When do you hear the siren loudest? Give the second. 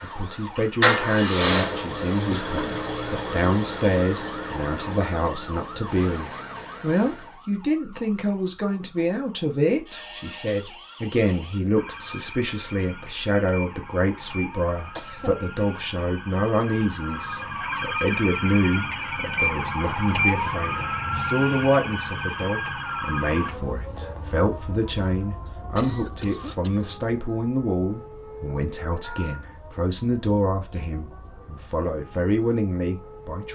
20 s.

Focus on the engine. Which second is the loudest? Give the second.
1 s.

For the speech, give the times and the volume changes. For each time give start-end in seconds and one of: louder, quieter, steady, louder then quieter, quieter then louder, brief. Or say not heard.
0.0-33.4 steady.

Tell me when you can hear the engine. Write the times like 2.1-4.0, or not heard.
0.0-7.4.